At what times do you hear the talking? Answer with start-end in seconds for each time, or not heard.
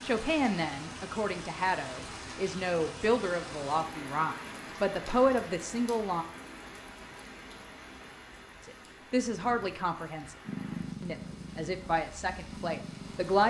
0.0-6.2, 8.7-10.3, 11.0-13.4.